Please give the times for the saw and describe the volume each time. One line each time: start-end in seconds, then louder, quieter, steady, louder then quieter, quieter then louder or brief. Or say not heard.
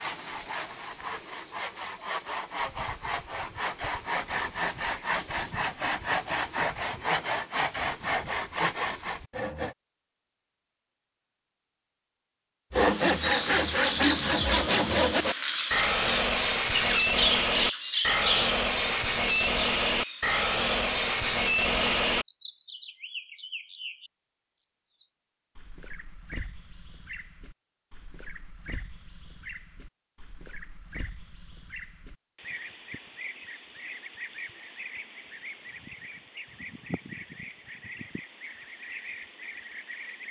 0.0-9.8 louder
12.7-22.2 steady.